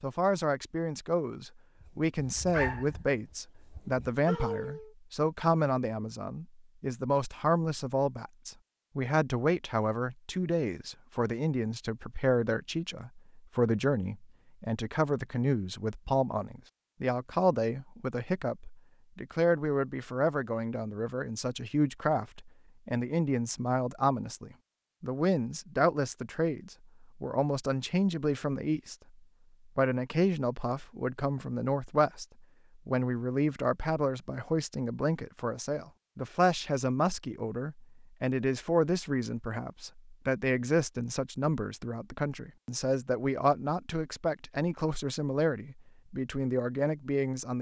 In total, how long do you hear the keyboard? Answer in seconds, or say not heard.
not heard.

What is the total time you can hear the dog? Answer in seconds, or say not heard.
3 s.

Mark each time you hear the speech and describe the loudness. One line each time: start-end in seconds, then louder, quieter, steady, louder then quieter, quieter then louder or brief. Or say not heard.
0.0-28.9 steady
29.8-32.2 brief
32.9-47.5 steady.